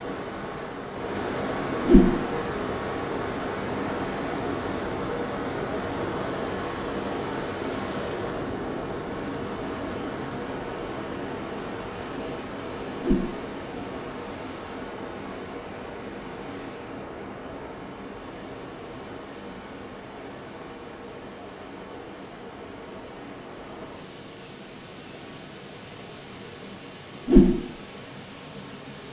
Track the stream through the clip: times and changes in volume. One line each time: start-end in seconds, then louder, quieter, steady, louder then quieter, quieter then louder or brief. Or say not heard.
0.0-29.0 quieter.